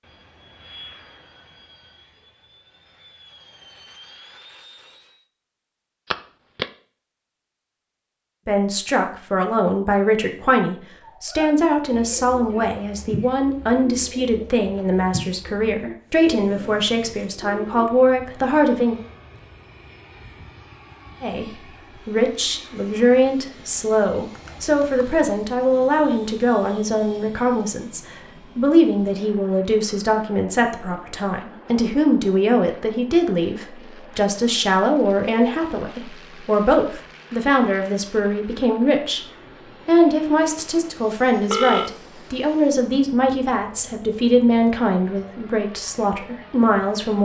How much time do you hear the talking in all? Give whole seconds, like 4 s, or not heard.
36 s.